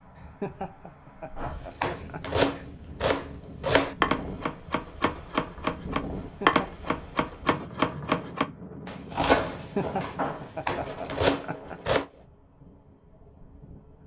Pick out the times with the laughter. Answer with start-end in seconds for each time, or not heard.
0.1-2.6, 6.2-6.7, 9.6-11.9.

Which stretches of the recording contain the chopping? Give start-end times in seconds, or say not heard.
1.4-12.1.